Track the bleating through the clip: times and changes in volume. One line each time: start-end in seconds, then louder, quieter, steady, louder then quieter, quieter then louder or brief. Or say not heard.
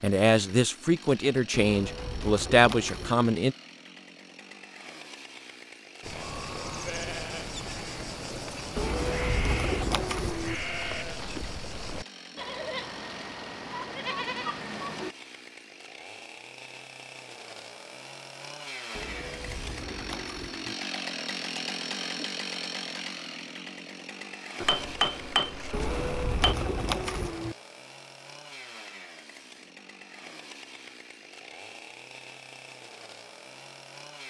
6.0-15.2 steady.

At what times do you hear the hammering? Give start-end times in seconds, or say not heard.
24.6-26.6.